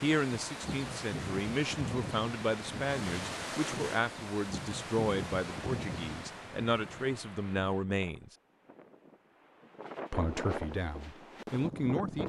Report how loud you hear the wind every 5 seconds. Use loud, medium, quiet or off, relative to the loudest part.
loud, medium, loud.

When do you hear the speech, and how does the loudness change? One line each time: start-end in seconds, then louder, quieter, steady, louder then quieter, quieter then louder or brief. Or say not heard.
0.0-8.3 steady
10.1-12.2 brief.